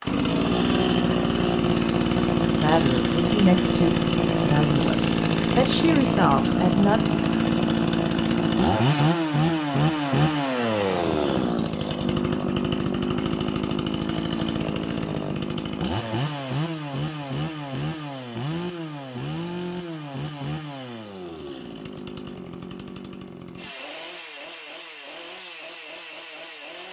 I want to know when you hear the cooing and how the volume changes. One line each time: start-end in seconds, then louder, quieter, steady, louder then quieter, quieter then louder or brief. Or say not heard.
not heard.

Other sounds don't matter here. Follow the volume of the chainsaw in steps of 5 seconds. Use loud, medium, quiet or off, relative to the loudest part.
loud, loud, loud, medium, quiet, quiet.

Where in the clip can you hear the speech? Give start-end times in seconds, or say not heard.
2.6-7.0.